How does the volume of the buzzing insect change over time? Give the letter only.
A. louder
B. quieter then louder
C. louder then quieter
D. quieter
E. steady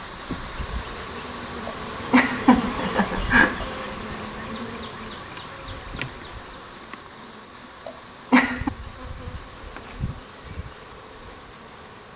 D.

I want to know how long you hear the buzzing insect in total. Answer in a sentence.
The buzzing insect can be heard for 12 seconds in total.